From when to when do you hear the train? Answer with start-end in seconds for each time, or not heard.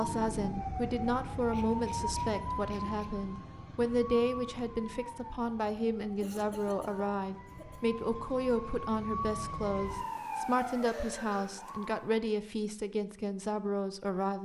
not heard.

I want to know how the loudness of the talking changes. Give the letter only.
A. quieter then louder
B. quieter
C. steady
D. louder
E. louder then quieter
C.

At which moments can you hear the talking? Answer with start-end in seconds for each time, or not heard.
0.0-14.3.